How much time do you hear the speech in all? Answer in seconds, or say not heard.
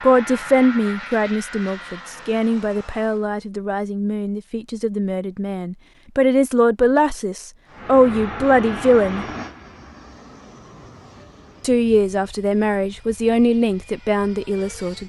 13 s.